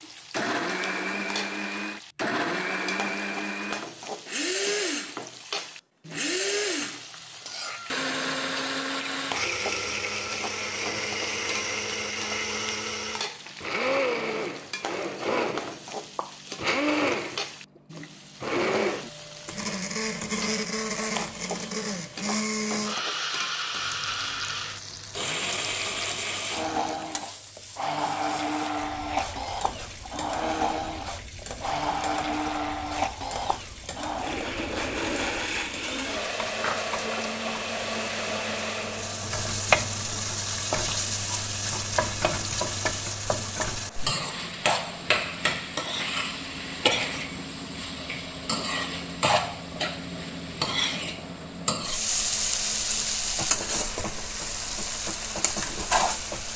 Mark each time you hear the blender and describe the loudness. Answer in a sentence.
The blender can be heard from 0.0 to 56.5 s, getting quieter.